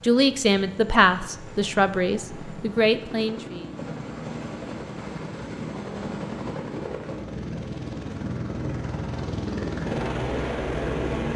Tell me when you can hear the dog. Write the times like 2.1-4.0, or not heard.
not heard.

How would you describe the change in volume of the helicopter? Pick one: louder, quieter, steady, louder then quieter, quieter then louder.
louder.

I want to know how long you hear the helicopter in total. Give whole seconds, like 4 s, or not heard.
11 s.